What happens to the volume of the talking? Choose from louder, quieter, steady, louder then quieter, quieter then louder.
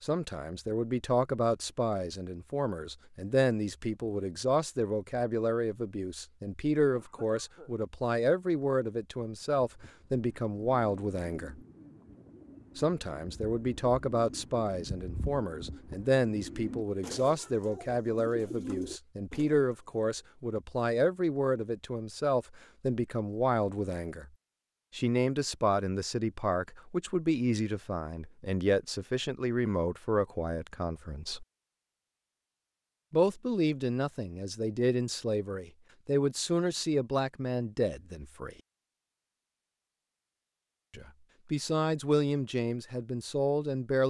steady.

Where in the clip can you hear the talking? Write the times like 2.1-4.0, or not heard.
0.0-11.6, 12.8-24.3, 24.9-31.4, 33.1-38.5, 40.9-44.0.